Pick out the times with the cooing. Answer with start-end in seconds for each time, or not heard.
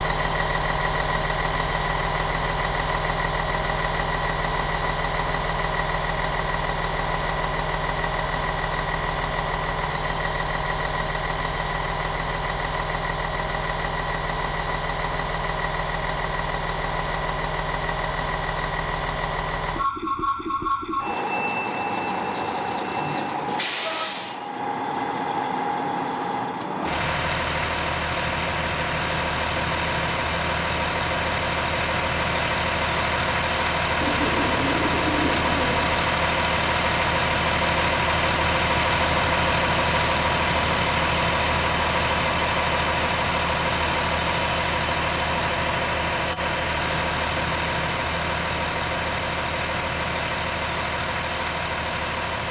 34.0-36.1.